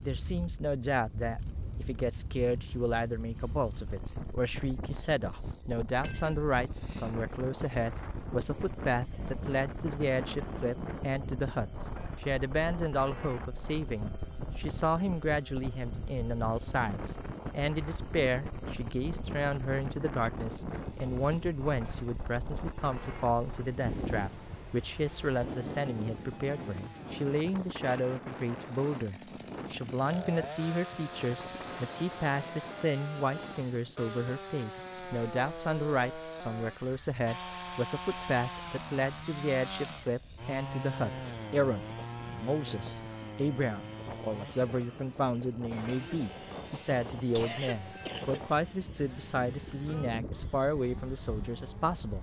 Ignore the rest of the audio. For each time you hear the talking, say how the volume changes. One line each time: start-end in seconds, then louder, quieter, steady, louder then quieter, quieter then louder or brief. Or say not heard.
0.0-52.1 steady.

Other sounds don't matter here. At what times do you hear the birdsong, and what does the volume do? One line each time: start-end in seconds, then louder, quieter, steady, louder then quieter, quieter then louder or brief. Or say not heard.
not heard.